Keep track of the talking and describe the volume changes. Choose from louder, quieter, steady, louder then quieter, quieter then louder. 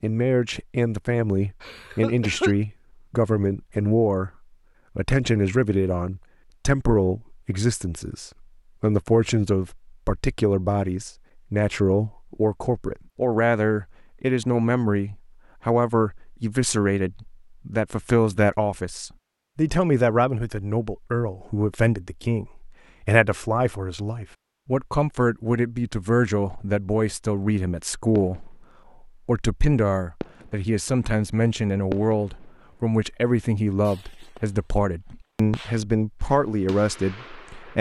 steady.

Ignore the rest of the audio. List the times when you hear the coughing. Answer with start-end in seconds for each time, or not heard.
1.6-2.5.